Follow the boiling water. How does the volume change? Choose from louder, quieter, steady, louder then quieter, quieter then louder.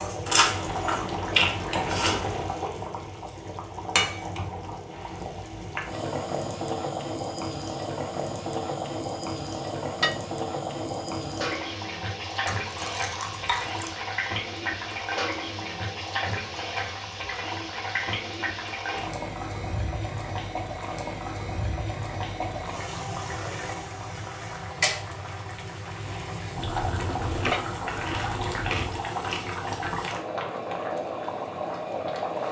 steady.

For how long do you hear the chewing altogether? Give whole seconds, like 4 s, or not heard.
6 s.